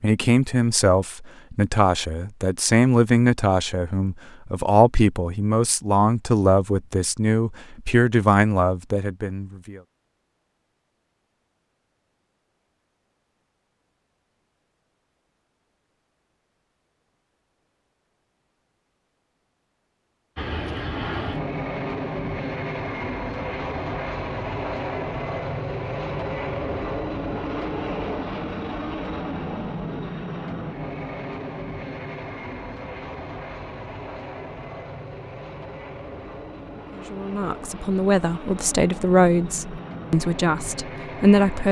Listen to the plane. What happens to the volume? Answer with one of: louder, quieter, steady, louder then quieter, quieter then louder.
quieter.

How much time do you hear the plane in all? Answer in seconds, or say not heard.
21 s.